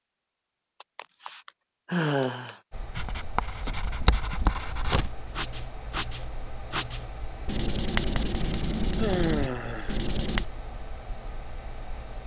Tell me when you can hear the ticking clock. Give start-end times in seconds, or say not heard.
not heard.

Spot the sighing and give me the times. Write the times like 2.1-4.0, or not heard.
0.8-2.6, 8.5-10.0.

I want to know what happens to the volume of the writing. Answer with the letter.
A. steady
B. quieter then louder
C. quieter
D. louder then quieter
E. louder
A.